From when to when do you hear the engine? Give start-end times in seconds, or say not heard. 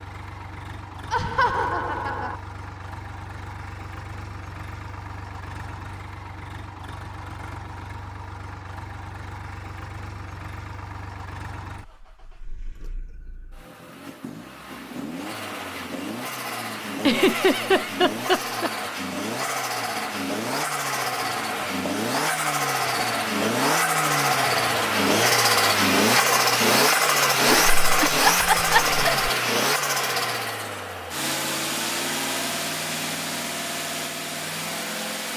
0.0-35.3.